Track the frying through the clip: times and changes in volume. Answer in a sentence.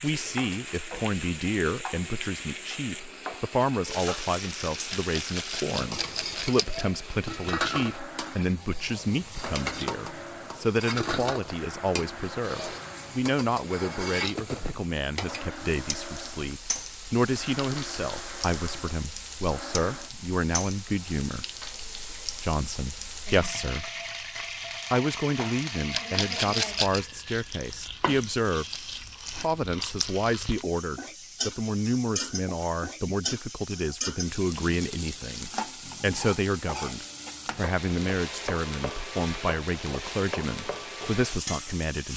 The frying can be heard from 0.0 to 42.1 s, at a steady volume.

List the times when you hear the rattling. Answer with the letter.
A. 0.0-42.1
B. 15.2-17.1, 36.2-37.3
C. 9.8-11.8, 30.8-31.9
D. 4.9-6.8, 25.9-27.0
D.